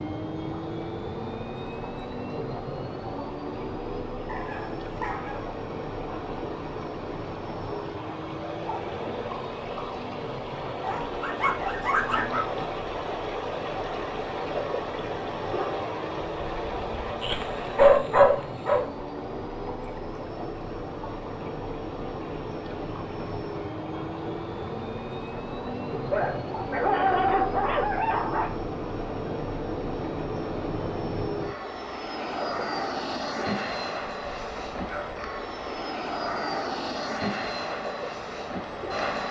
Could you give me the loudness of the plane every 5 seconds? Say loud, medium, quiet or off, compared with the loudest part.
loud, medium, medium, medium, loud, loud, loud, loud.